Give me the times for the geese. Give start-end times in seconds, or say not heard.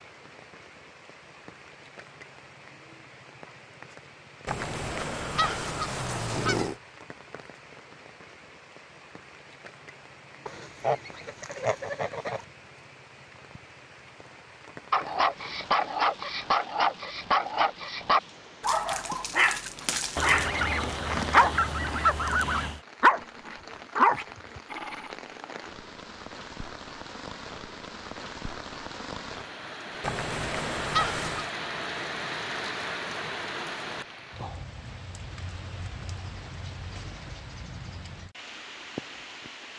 4.5-6.8, 10.4-12.4, 20.1-22.8, 30.0-31.5.